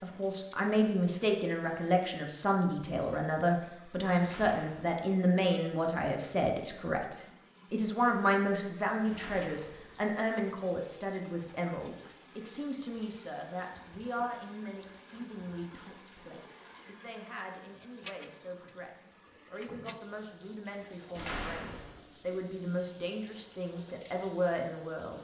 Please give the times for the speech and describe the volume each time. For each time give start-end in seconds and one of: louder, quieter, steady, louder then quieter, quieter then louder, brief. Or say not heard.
0.0-25.1 quieter then louder.